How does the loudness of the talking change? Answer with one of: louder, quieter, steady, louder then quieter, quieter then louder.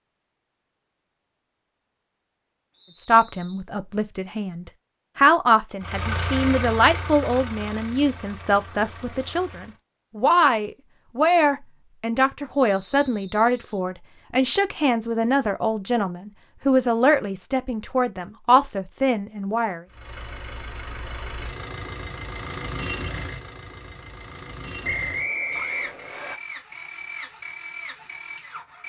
steady.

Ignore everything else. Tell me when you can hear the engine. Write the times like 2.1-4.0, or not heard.
5.8-9.8, 19.9-28.8.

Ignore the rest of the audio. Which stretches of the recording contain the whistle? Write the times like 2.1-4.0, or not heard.
2.7-3.6, 12.8-13.8, 24.8-26.4.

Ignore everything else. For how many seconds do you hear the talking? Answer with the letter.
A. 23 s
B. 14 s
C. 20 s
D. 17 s
D.